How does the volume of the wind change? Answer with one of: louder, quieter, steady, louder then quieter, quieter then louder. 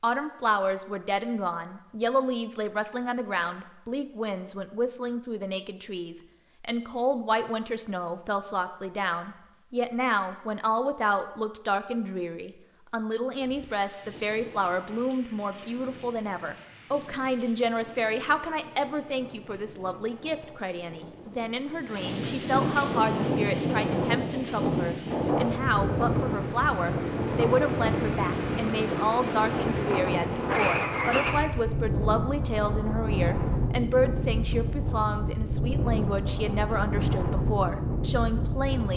louder.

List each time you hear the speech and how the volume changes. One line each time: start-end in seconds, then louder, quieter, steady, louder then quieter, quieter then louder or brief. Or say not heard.
0.0-38.9 steady.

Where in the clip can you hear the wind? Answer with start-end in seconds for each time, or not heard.
13.4-38.9.